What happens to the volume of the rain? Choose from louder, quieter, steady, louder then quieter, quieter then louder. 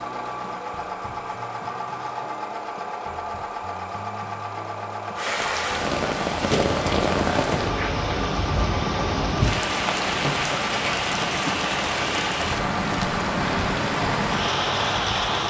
steady.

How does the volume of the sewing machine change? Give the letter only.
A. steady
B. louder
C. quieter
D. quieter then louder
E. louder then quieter
A.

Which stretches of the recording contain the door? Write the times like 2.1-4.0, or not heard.
6.4-7.2.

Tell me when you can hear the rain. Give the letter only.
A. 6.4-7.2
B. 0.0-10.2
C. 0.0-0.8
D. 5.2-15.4
D.